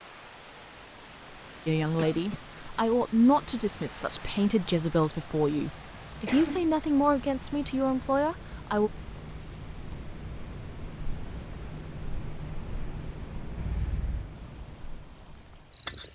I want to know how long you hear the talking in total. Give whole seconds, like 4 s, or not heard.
7 s.